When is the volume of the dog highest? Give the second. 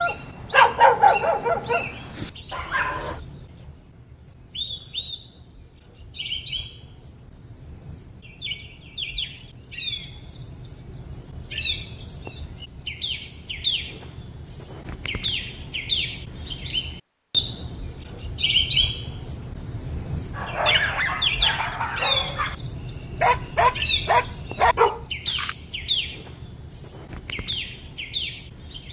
1 s.